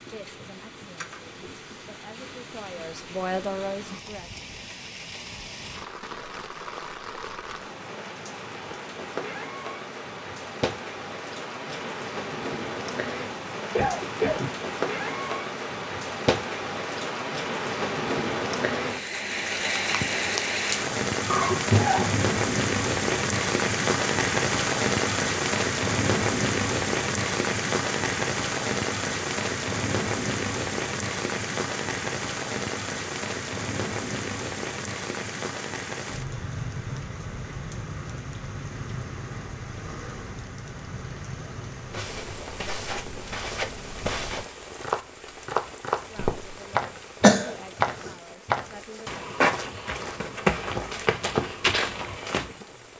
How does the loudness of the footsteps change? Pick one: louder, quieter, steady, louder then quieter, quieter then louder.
louder.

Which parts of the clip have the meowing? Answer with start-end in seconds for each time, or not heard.
not heard.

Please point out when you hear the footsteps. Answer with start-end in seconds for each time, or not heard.
41.9-52.5.